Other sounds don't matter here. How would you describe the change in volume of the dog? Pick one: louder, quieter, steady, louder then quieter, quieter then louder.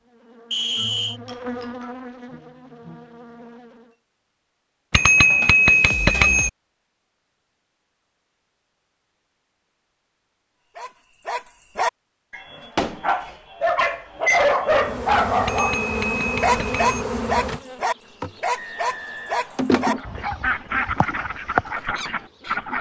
louder then quieter.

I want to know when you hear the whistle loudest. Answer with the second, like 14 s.
1 s.